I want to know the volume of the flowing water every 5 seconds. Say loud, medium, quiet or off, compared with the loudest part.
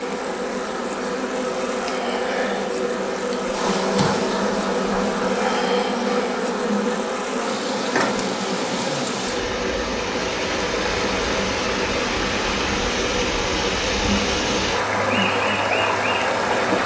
quiet, medium, loud, loud.